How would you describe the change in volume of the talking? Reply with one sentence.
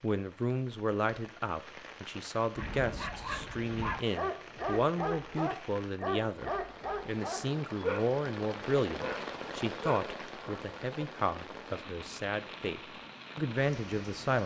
The volume of the talking stays about the same.